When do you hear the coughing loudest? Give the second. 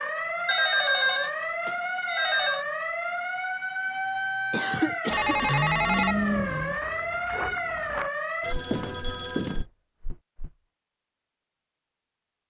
5 s.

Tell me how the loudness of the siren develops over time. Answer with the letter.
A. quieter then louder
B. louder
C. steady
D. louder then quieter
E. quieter
C.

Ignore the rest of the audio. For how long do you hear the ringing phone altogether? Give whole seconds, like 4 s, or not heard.
5 s.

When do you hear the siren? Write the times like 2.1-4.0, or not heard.
0.0-8.6.